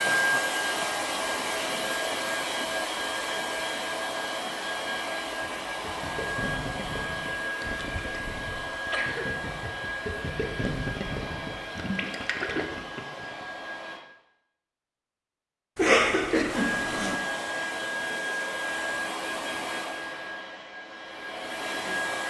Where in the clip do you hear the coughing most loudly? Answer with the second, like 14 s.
16 s.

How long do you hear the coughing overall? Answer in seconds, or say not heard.
3 s.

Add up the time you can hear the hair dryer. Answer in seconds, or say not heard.
20 s.